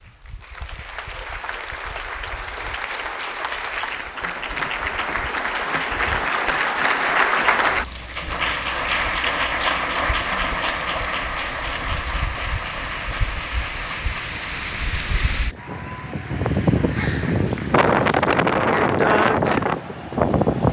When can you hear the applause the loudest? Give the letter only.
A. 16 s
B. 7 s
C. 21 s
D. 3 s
B.